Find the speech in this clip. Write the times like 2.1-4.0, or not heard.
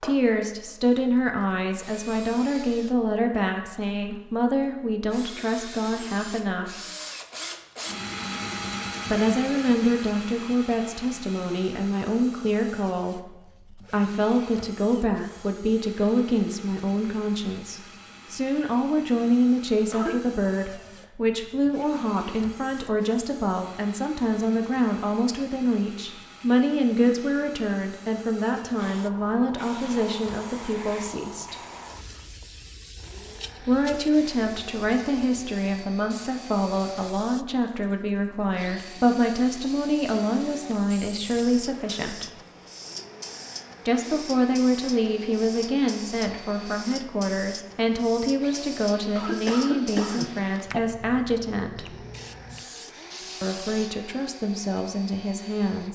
0.0-6.8, 9.1-31.6, 33.6-42.3, 43.9-52.0, 53.4-55.8.